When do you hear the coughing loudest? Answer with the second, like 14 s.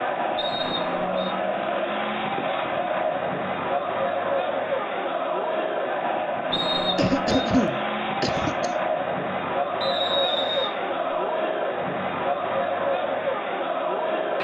7 s.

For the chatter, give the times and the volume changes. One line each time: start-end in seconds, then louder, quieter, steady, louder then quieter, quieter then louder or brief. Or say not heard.
0.0-14.3 steady.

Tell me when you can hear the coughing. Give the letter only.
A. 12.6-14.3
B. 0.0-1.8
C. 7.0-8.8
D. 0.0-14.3
C.